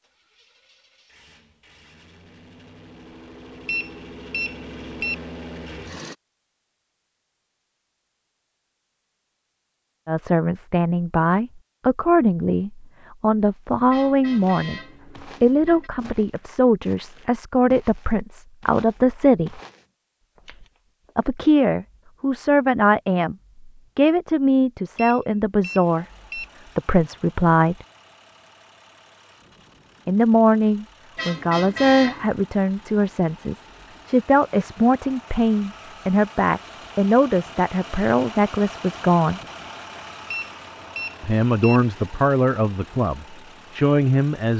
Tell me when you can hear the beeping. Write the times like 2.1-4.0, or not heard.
3.6-5.2, 24.9-26.4, 40.3-41.8.